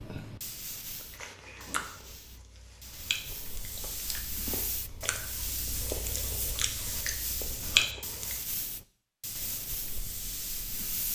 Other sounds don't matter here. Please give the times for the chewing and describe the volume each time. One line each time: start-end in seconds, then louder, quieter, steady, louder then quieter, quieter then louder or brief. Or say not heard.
1.0-8.4 louder.